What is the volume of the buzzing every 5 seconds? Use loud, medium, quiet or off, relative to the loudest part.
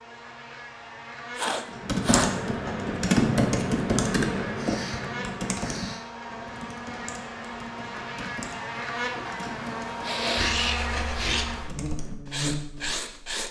medium, loud, loud.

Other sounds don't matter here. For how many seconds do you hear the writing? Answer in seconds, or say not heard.
3 s.